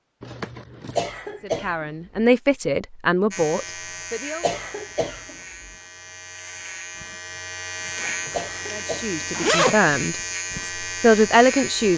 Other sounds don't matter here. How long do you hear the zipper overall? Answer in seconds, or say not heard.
3 s.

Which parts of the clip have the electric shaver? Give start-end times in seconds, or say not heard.
3.3-11.9.